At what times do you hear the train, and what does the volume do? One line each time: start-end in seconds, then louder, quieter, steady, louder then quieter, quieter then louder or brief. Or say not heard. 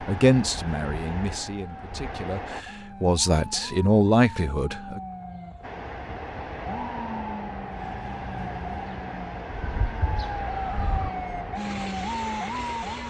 0.0-2.6 brief
5.6-13.0 steady.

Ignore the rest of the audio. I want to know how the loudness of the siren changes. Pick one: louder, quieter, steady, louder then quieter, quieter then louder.
louder.